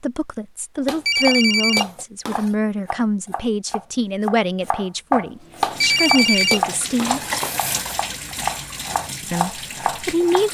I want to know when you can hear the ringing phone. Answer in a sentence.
The ringing phone can be heard from 0.8 to 2.5 s and from 5.6 to 8.0 s.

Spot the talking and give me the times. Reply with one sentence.
You can hear the talking from 0.0 to 7.2 s and from 9.2 to 10.4 s.